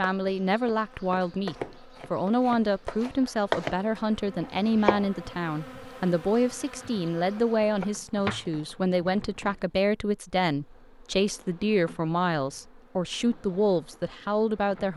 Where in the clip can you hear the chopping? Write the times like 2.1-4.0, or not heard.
0.0-3.8, 4.4-5.0, 7.3-9.1.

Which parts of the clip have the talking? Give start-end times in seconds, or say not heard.
0.0-14.9.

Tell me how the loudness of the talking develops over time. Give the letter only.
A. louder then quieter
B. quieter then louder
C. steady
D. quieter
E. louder
C.